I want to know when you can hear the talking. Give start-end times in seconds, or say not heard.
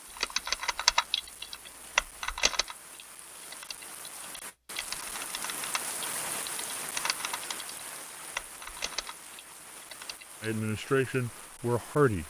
10.4-12.2.